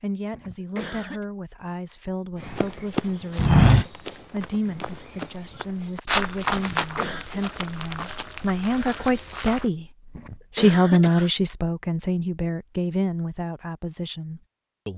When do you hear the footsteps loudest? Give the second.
4 s.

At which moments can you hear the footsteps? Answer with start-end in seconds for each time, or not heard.
2.4-9.7.